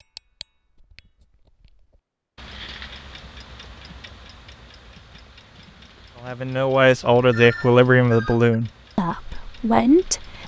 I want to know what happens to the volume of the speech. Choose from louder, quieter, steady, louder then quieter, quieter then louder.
quieter then louder.